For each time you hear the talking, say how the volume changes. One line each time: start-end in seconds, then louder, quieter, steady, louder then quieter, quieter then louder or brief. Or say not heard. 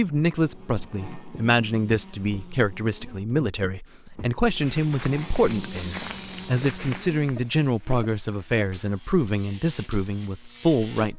0.0-11.1 steady.